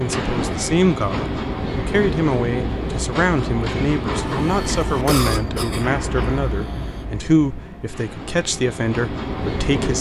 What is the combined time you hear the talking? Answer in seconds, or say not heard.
10 s.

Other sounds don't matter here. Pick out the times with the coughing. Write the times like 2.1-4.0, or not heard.
4.5-7.0.